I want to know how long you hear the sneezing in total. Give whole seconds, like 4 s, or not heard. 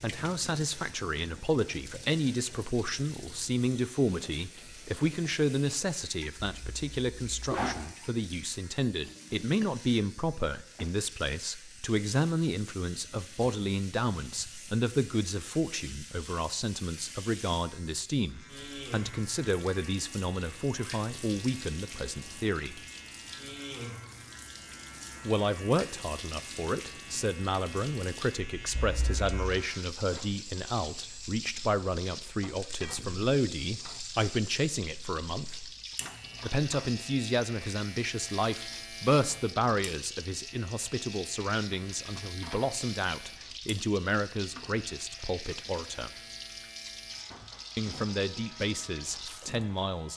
2 s.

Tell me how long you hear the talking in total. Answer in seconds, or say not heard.
45 s.